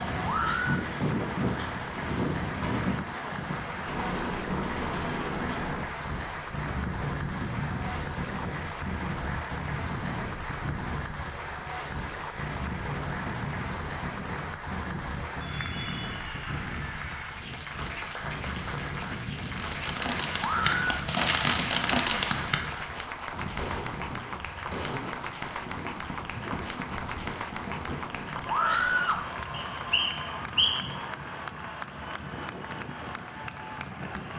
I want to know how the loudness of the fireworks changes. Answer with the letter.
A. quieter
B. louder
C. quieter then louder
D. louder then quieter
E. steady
A.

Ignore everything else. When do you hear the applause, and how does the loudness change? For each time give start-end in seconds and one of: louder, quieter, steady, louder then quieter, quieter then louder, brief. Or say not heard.
0.0-34.3 steady.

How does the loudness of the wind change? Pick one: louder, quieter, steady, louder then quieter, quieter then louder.
quieter.